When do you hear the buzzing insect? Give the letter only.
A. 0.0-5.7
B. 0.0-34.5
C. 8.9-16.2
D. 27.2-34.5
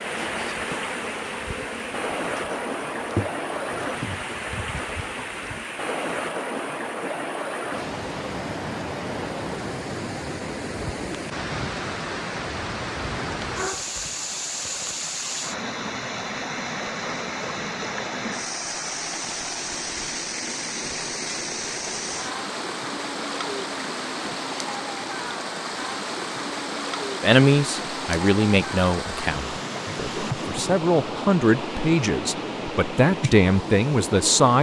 A.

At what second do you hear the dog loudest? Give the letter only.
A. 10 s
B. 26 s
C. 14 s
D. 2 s
C.